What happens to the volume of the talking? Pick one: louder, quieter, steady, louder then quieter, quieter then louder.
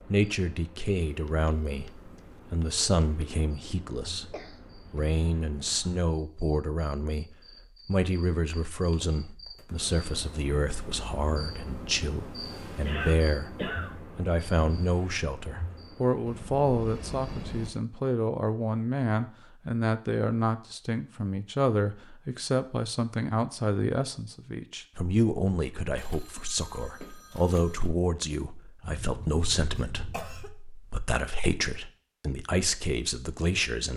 steady.